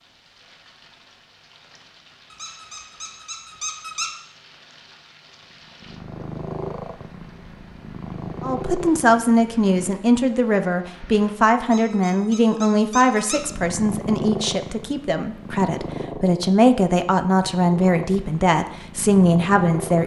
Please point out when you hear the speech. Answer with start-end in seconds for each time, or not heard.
8.4-20.0.